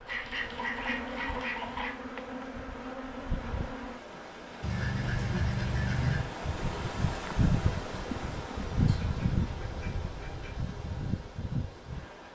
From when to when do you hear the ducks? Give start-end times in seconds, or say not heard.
0.1-1.9, 4.6-6.3, 8.8-10.6.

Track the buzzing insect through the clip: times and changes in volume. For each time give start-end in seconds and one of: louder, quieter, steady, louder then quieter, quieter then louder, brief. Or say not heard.
0.0-12.2 louder then quieter.